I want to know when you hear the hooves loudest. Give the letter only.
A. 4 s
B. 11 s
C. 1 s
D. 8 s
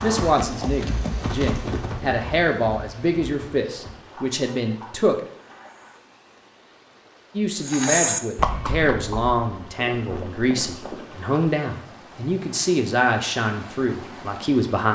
D.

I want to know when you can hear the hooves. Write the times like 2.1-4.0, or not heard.
0.0-6.0, 7.6-11.2.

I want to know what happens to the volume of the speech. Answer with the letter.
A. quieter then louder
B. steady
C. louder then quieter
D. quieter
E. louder
B.